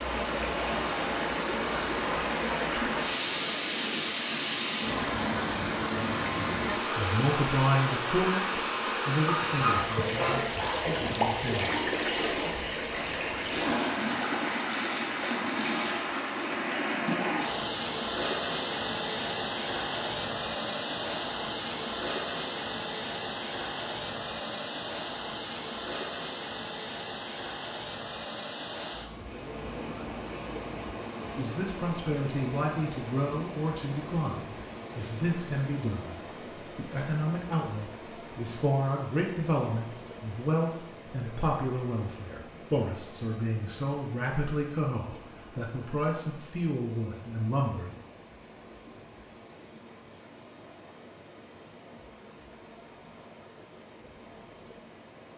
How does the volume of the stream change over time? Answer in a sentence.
The loudness of the stream goes down.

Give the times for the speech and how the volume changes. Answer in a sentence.
The speech can be heard from 7.0 to 11.8 s, getting quieter; and from 31.4 to 48.0 s, at a steady volume.